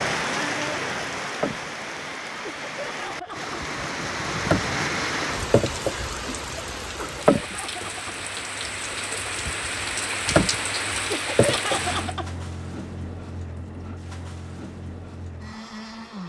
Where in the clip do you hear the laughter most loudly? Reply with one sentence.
The volume of the laughter peaks at 12 seconds.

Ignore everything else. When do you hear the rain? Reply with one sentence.
You can hear the rain from 0.0 to 12.2 s.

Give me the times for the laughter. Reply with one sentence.
You can hear the laughter from 2.4 to 3.5 s, from 7.0 to 8.1 s and from 11.1 to 12.3 s.